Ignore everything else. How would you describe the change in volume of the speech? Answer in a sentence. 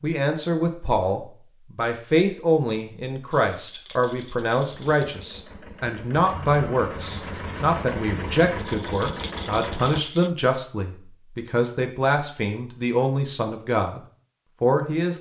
The volume of the speech stays about the same.